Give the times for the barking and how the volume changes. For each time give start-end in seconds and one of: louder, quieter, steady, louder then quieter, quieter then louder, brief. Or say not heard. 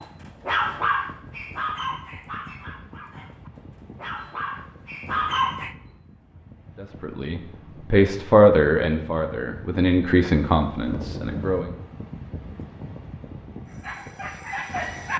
0.0-5.8 quieter then louder
13.7-15.1 brief.